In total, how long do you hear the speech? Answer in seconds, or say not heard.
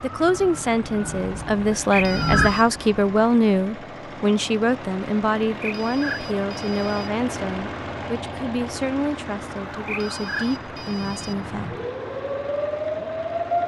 12 s.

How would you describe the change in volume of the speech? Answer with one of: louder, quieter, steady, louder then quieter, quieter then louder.
quieter.